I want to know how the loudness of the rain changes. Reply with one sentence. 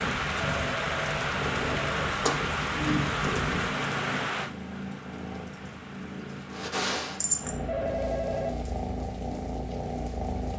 The volume of the rain goes down.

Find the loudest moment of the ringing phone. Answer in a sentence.
The loudest moment of the ringing phone is at 8 seconds.